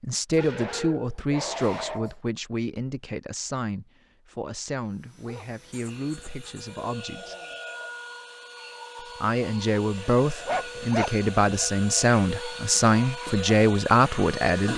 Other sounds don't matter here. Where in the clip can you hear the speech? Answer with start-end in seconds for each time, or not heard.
0.0-7.3, 9.0-14.7.